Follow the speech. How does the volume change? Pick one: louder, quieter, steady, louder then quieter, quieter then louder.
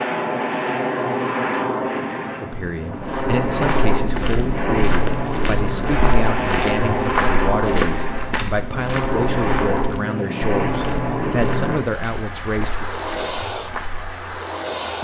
steady.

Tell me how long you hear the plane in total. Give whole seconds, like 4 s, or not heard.
15 s.